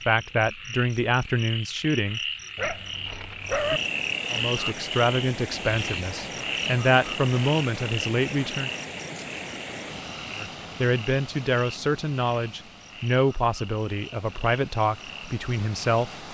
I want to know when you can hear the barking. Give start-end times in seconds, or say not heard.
2.5-3.8.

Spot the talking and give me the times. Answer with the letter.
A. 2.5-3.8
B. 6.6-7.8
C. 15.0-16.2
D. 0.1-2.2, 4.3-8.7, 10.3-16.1
D.